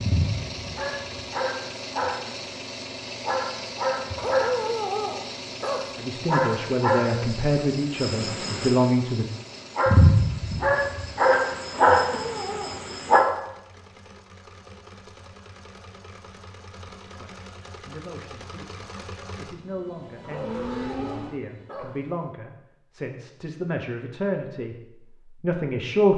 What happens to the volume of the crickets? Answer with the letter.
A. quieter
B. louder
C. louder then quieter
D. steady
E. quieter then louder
B.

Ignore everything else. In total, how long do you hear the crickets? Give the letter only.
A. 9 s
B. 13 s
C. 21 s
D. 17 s
B.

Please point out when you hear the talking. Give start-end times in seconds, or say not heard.
6.0-9.2, 17.0-26.1.